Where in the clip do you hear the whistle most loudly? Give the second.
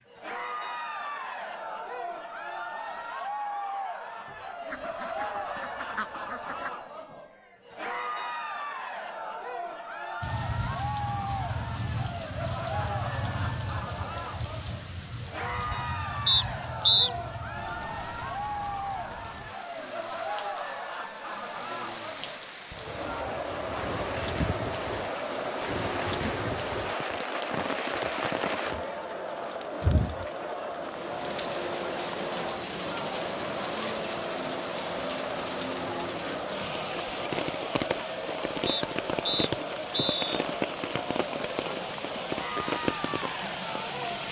17 s.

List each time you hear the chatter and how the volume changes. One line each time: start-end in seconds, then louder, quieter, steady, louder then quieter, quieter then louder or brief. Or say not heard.
0.1-44.2 steady.